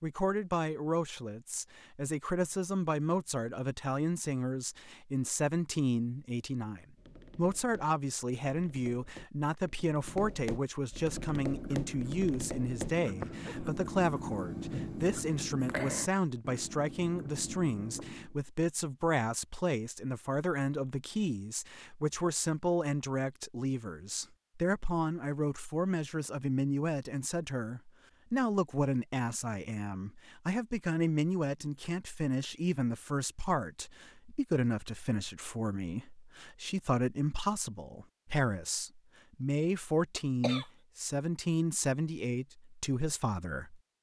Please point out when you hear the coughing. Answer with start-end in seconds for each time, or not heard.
13.2-13.8, 40.1-40.6.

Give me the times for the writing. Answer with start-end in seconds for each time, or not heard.
11.1-18.4.